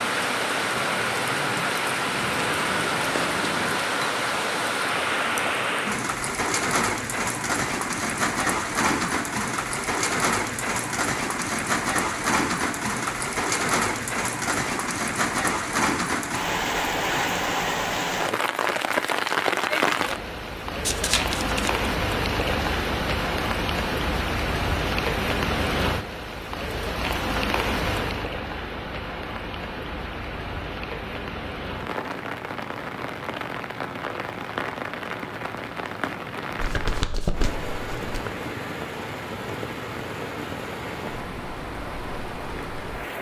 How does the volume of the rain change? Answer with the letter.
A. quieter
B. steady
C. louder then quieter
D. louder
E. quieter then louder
A.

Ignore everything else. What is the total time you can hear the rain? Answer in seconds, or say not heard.
43 s.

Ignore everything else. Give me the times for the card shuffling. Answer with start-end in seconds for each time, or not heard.
2.1-3.9, 20.9-21.9, 36.5-38.2.